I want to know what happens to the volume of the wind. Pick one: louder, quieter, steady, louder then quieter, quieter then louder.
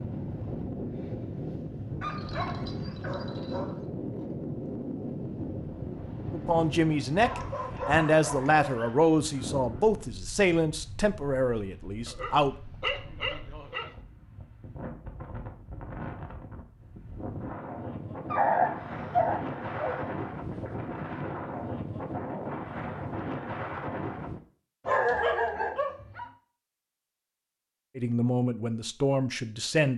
quieter then louder.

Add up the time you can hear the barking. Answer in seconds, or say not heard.
9 s.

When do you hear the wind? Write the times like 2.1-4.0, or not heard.
0.0-24.4.